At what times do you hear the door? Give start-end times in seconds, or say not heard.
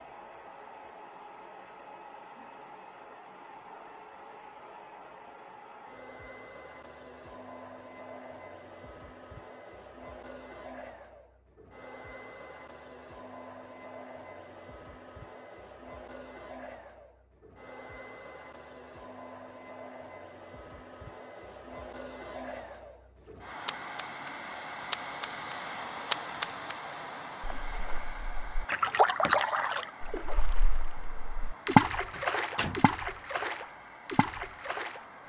30.9-31.5, 32.1-32.9.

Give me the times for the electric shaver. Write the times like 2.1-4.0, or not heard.
not heard.